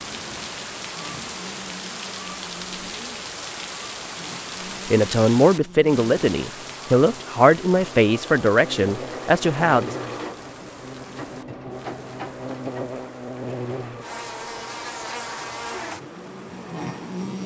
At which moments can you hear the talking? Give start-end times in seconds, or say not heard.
4.9-9.9.